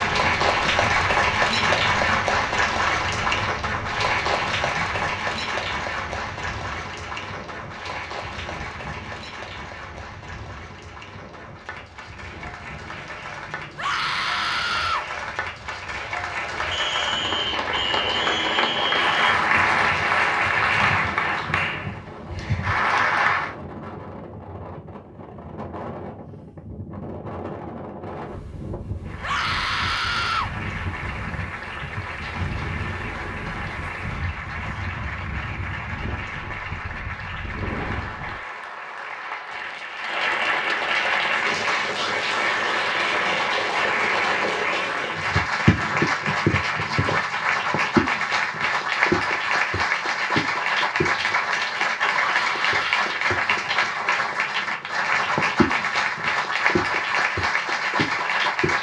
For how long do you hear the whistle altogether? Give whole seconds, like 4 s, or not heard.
3 s.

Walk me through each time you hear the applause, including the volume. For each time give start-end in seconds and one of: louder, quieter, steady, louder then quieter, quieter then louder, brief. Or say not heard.
0.0-23.6 quieter then louder
29.1-58.7 louder.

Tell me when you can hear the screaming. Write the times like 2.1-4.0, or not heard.
13.8-15.1, 29.2-30.5, 52.1-53.1.